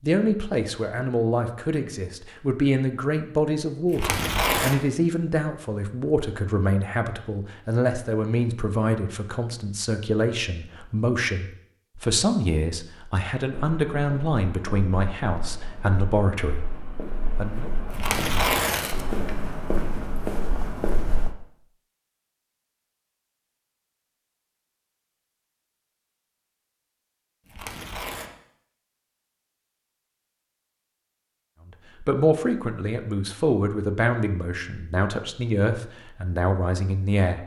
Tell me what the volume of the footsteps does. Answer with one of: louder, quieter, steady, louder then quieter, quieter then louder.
louder.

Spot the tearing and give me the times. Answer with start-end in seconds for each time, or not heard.
3.9-4.8, 17.9-19.4, 27.4-28.3.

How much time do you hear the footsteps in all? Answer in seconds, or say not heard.
8 s.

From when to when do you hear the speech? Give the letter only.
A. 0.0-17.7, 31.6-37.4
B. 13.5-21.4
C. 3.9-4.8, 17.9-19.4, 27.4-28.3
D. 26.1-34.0
A.